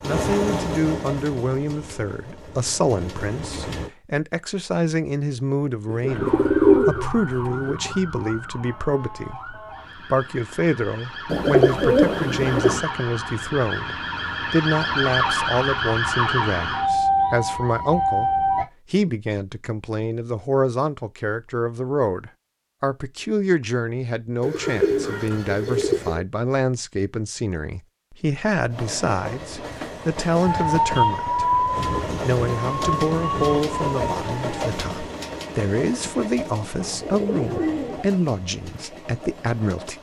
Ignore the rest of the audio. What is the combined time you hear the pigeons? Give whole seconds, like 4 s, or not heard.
7 s.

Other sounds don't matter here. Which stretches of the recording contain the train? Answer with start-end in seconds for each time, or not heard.
0.0-3.9, 28.7-39.9.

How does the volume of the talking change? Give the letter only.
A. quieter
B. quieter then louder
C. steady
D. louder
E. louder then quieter
C.